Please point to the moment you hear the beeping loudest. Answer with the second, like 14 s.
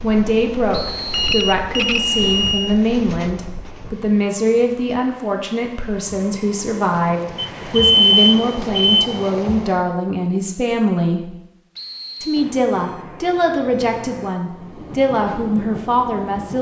8 s.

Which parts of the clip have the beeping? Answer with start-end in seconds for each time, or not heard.
1.1-2.8, 7.3-9.1, 12.3-14.3.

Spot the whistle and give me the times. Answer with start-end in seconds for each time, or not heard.
0.7-1.4, 11.8-12.4.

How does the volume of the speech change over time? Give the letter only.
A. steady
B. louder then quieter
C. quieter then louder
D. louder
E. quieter
A.